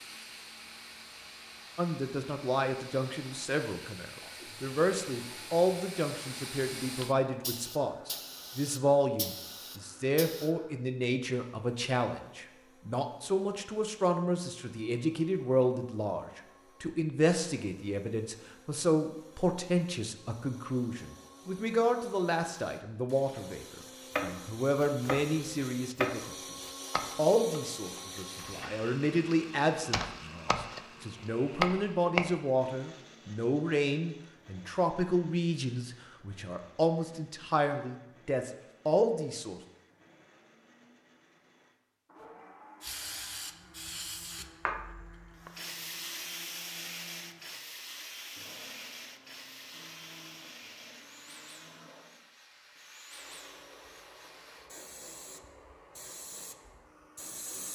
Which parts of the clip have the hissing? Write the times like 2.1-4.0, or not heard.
0.0-10.5, 42.8-57.7.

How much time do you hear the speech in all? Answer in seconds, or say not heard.
37 s.